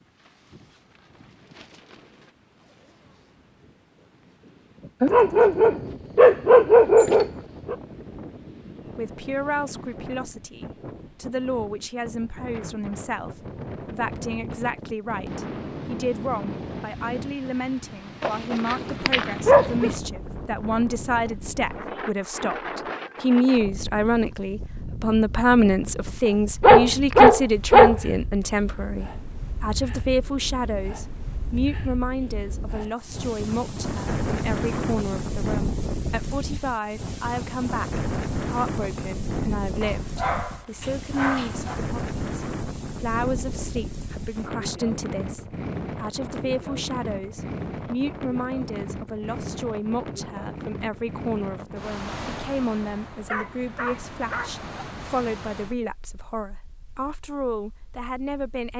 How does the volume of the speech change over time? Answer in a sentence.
The volume of the speech goes up, then down.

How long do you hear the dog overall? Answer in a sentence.
The dog can be heard for 10 seconds in total.